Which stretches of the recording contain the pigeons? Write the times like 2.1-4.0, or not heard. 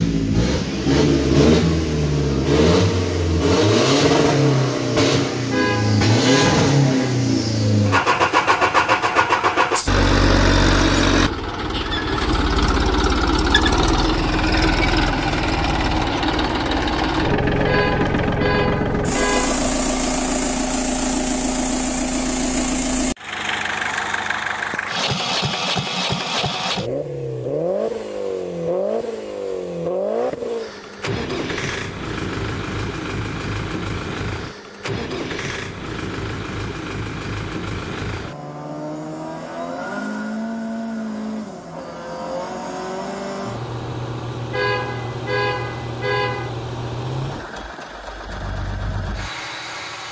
not heard.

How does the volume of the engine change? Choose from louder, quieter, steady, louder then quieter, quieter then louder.
quieter.